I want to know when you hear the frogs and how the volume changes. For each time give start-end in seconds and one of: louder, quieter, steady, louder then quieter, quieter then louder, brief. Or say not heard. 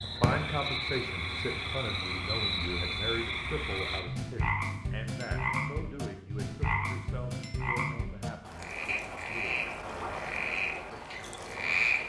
0.0-12.0 steady.